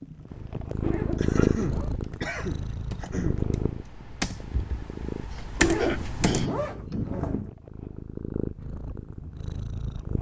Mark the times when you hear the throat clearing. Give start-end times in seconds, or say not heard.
1.1-3.4, 5.3-7.2.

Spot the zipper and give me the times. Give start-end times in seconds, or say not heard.
0.8-1.9, 5.5-7.5.